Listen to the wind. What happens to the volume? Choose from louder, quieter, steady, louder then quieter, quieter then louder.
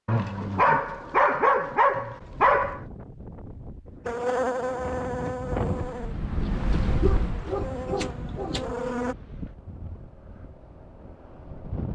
louder then quieter.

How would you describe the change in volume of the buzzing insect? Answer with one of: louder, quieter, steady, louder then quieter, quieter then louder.
quieter then louder.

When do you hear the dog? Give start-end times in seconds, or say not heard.
0.1-2.8, 7.0-8.7.